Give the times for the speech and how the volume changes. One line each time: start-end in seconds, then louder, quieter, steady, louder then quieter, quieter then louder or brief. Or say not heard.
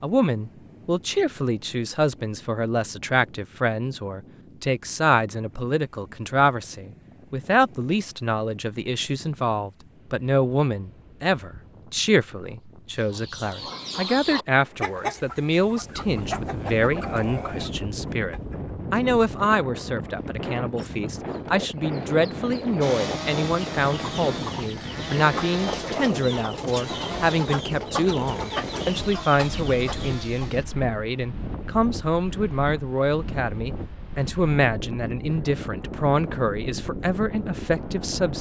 0.0-38.3 steady.